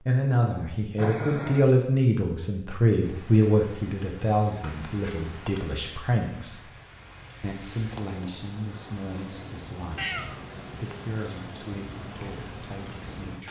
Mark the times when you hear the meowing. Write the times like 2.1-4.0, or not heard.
0.9-1.7, 4.6-5.7, 9.9-10.6.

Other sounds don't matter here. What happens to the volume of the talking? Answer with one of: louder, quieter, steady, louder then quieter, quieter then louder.
quieter.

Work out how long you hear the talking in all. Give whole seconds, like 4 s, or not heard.
13 s.